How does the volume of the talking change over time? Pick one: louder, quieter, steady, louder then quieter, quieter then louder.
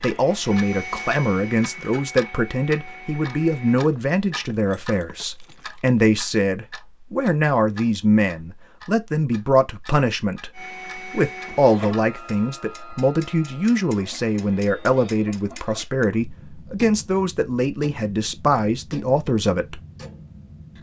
steady.